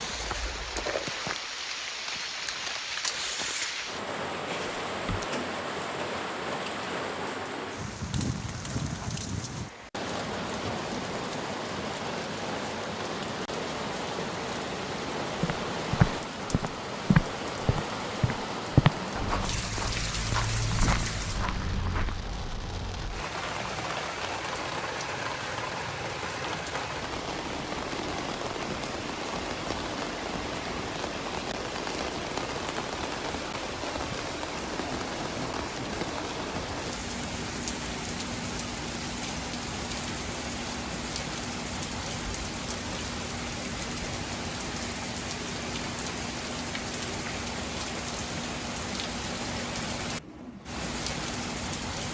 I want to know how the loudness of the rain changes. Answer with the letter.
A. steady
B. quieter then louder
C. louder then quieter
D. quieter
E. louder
A.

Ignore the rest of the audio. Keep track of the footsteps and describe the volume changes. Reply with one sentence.
The loudness of the footsteps goes down.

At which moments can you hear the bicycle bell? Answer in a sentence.
The bicycle bell can be heard from 4.5 to 5.3 s.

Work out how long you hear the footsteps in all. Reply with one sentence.
The footsteps can be heard for 7 seconds in total.